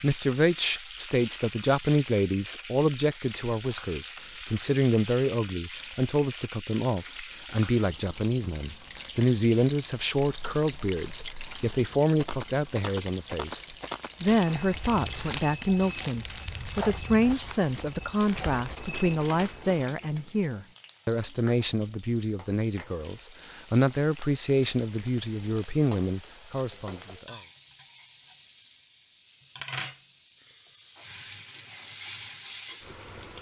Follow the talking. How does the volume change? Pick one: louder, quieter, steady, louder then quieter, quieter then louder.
steady.